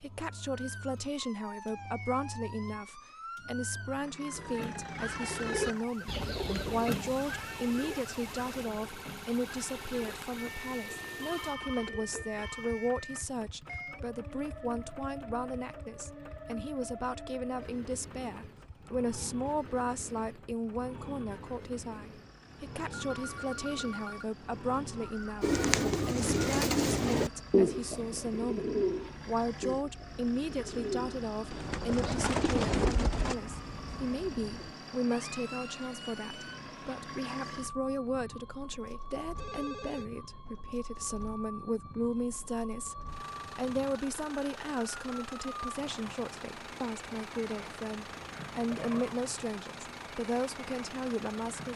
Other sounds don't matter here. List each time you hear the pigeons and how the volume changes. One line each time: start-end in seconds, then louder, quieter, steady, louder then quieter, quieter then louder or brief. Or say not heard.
4.3-12.2 quieter
25.4-33.4 quieter then louder.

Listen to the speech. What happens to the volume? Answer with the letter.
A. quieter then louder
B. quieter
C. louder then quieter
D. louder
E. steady
E.